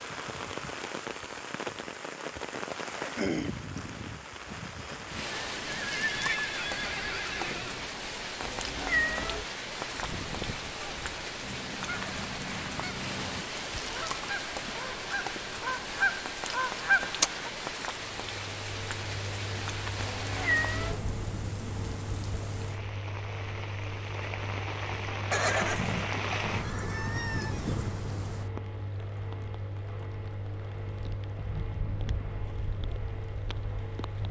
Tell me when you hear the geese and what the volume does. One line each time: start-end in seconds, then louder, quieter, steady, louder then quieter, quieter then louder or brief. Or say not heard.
9.8-17.5 louder.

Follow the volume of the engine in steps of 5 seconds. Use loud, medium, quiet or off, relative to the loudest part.
off, off, off, loud, loud, loud, loud.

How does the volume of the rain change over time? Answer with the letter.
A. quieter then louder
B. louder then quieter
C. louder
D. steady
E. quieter
E.